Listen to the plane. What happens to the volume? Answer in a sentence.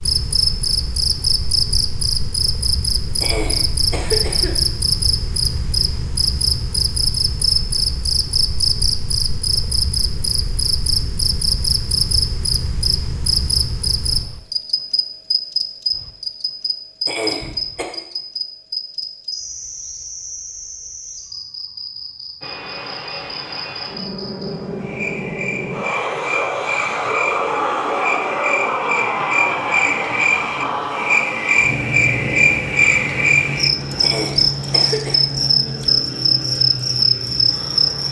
The loudness of the plane goes up, then down.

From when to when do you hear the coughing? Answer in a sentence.
The coughing can be heard from 3.2 to 4.6 s, from 17.1 to 17.9 s and from 34.0 to 35.2 s.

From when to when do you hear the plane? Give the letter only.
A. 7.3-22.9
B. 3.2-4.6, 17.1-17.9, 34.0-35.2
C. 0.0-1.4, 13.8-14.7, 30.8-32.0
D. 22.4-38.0
D.